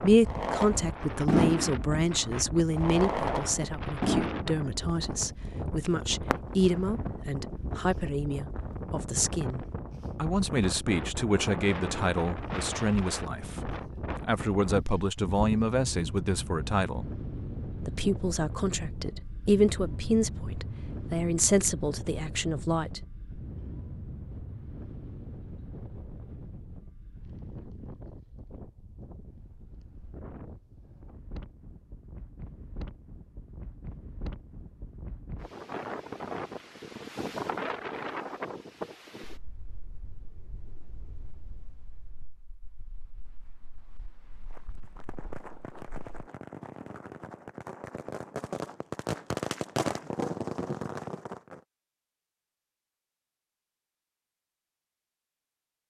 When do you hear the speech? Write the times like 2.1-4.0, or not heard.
0.0-17.1, 17.9-23.0.